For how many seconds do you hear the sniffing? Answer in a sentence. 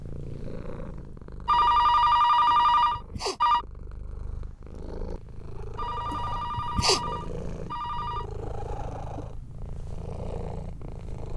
The sniffing can be heard for 2 seconds in total.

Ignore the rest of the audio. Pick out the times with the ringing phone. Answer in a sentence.
The ringing phone can be heard from 1.4 to 3.6 s and from 5.8 to 8.2 s.